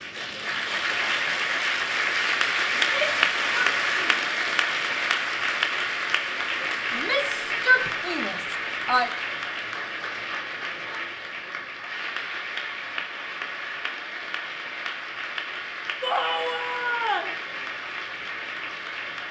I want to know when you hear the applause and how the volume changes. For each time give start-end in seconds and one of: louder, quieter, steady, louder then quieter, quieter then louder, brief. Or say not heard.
0.0-19.2 quieter.